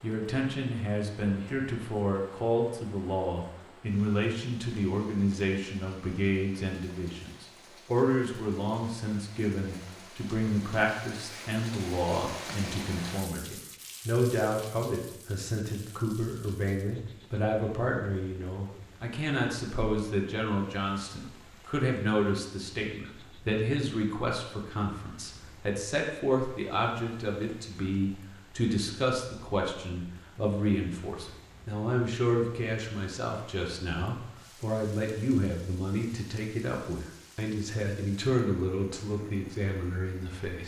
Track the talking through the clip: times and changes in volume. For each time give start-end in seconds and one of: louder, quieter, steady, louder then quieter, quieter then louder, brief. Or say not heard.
0.0-40.6 steady.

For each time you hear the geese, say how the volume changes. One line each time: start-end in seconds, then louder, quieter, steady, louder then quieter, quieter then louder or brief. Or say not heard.
not heard.